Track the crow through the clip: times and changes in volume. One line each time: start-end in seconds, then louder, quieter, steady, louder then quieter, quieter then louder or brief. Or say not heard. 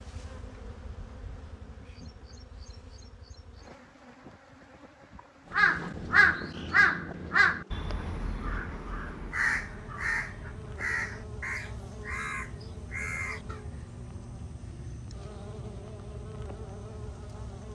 5.5-13.6 quieter.